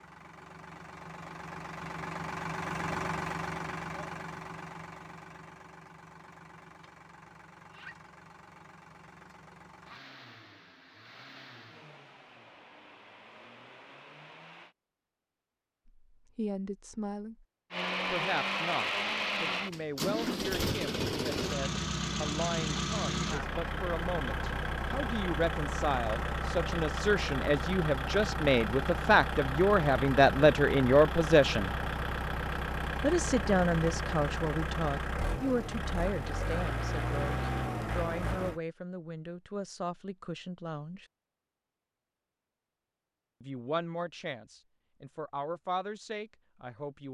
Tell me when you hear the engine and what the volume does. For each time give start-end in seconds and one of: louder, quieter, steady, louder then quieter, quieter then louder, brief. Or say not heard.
0.0-14.8 quieter
17.7-38.6 steady.